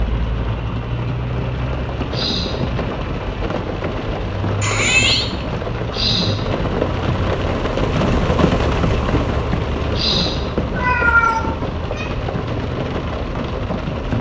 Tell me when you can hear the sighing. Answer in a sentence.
You can hear the sighing from 2.1 to 2.7 s, from 5.9 to 6.5 s and from 9.9 to 10.5 s.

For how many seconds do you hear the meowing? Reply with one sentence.
The meowing can be heard for 2 seconds in total.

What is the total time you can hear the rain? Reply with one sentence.
You can hear the rain for 14 seconds altogether.